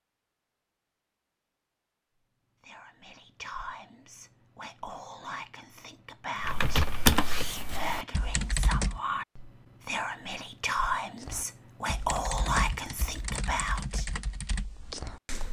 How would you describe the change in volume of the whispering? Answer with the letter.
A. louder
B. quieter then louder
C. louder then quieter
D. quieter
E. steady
A.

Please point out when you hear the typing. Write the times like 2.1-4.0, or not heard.
6.4-9.0, 11.2-15.4.